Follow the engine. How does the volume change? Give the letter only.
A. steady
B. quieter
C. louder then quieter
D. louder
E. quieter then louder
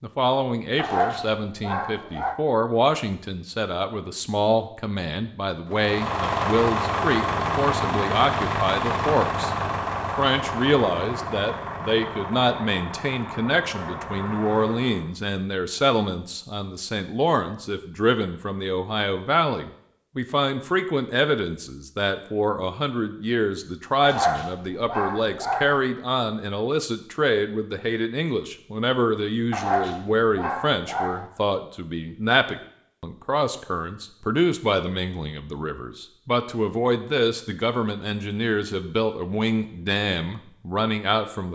B.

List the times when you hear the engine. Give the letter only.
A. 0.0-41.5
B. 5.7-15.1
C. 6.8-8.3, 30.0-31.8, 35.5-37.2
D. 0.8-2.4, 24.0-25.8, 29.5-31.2
B.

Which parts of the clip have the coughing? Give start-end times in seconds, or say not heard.
not heard.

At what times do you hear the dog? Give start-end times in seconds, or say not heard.
0.8-2.4, 24.0-25.8, 29.5-31.2.